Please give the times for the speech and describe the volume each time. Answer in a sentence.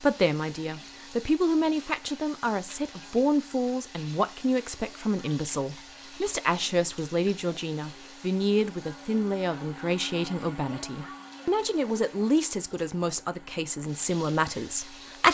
The speech can be heard from 0.0 to 15.3 s, at a steady volume.